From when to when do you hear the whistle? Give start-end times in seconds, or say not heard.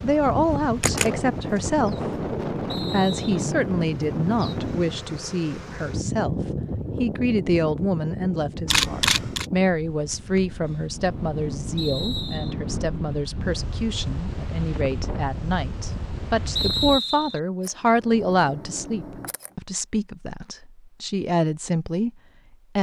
2.6-3.5, 11.8-12.6, 16.6-17.4.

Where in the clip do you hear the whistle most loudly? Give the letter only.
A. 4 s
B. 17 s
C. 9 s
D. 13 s
B.